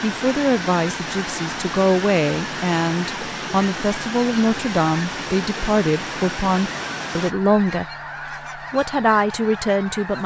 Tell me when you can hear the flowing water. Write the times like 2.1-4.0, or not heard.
0.0-7.3.